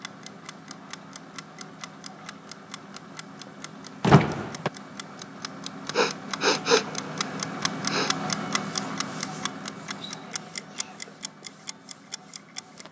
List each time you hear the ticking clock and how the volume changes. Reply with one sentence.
The ticking clock can be heard from 0.0 to 12.8 s, getting louder then quieter.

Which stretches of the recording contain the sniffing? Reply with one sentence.
The sniffing can be heard from 5.9 to 8.2 s.